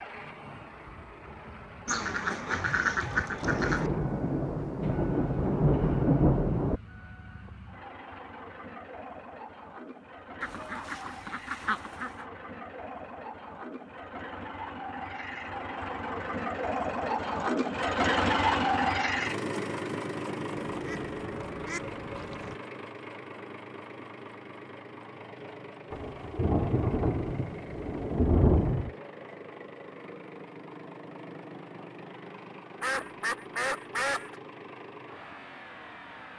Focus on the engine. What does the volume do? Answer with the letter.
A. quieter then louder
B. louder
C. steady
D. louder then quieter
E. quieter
D.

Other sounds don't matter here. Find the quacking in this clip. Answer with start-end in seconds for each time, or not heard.
1.9-3.9, 10.4-12.2, 20.6-22.6, 32.8-34.4.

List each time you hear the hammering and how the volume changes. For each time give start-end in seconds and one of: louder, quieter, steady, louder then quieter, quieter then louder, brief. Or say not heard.
not heard.